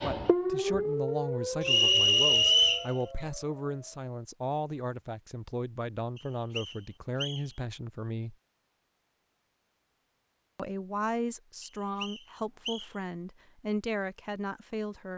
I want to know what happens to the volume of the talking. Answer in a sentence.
The loudness of the talking stays about the same.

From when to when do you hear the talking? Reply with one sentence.
You can hear the talking from 0.0 to 8.3 s and from 10.6 to 15.1 s.